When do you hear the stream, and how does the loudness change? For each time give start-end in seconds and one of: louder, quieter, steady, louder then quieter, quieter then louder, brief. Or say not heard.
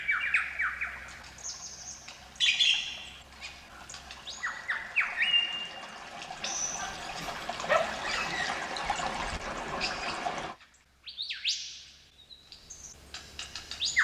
0.0-10.6 louder.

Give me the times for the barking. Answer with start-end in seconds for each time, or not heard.
6.8-8.3.